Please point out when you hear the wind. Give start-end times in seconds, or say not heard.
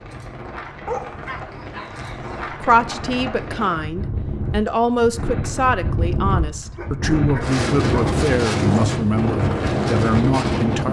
0.0-10.8.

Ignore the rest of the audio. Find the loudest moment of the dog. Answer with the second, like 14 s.
1 s.